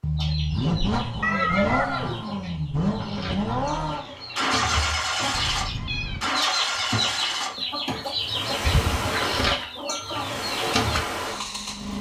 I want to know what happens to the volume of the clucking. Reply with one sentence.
The volume of the clucking goes up.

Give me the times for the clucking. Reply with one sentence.
The clucking can be heard from 0.1 to 11.1 s.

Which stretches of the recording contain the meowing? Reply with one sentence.
The meowing can be heard from 1.2 to 2.4 s, from 5.3 to 6.2 s and from 8.6 to 9.6 s.